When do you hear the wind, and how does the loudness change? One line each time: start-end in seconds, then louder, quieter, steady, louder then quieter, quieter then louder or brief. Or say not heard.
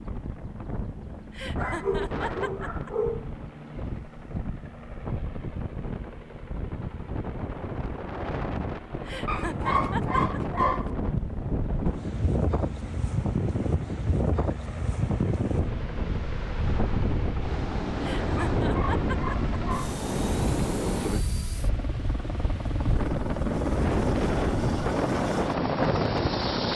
0.0-26.7 louder.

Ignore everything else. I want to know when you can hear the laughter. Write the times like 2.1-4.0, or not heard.
1.3-2.9, 9.1-10.4, 18.0-19.4.